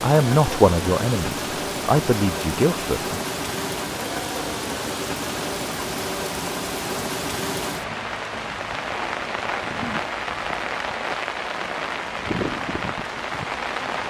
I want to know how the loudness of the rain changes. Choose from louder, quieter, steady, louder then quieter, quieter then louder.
steady.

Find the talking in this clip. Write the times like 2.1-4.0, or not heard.
0.0-3.2.